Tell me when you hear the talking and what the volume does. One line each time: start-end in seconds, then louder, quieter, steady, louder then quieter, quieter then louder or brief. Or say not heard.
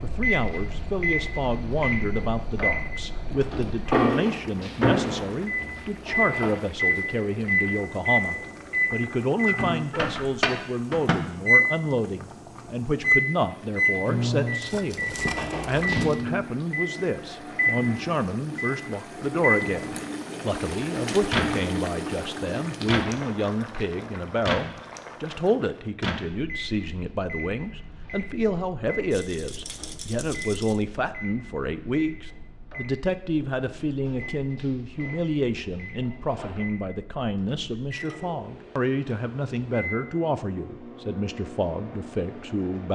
0.0-42.9 steady.